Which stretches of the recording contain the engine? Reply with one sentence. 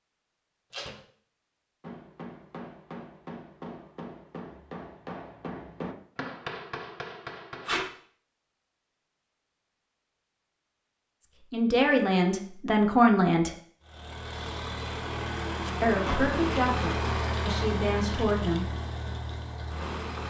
The engine can be heard from 13.8 to 20.2 s.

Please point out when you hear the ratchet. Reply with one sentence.
You can't hear the ratchet here.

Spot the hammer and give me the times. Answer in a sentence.
You can hear the hammer from 1.8 to 7.8 s.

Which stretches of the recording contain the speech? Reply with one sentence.
The speech can be heard from 11.5 to 13.5 s and from 15.8 to 18.6 s.